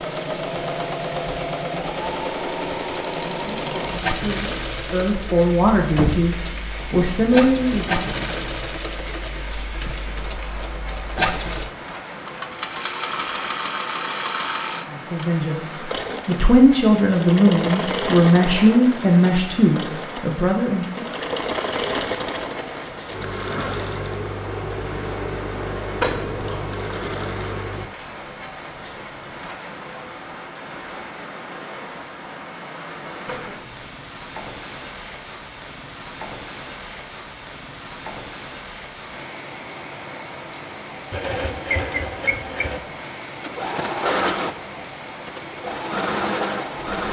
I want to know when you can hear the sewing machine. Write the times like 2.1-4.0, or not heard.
0.0-27.9, 41.1-47.0.